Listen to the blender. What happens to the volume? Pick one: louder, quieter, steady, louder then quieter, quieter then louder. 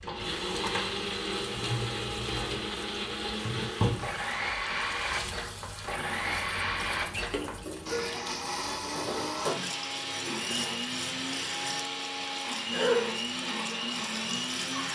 steady.